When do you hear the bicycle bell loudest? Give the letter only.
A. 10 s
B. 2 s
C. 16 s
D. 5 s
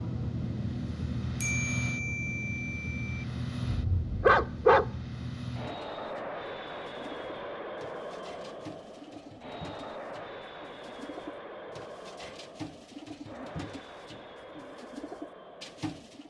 B.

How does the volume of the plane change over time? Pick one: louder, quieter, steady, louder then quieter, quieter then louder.
quieter.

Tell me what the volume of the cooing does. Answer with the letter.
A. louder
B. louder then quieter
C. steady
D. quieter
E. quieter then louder
A.